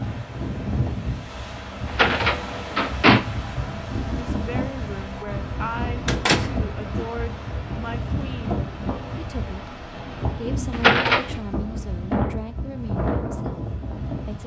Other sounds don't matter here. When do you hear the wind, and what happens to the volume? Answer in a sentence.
You can hear the wind from 0.0 to 14.4 s, at a steady volume.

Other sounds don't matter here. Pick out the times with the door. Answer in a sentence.
The door can be heard from 1.9 to 3.2 s, from 6.0 to 7.0 s and from 10.7 to 11.3 s.